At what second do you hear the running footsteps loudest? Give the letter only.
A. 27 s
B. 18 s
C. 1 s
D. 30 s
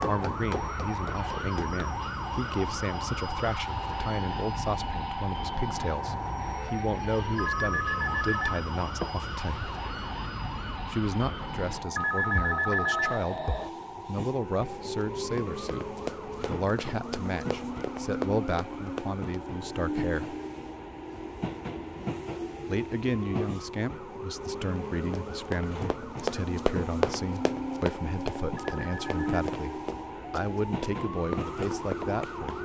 A.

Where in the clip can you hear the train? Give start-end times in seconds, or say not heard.
0.0-32.6.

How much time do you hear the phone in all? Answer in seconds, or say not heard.
4 s.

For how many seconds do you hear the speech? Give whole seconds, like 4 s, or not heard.
29 s.